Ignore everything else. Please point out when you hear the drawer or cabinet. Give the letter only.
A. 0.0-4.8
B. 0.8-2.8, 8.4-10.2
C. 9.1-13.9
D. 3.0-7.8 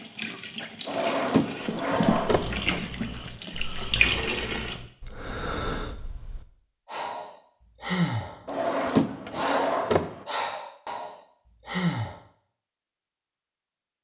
B.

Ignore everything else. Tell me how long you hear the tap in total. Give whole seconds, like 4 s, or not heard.
5 s.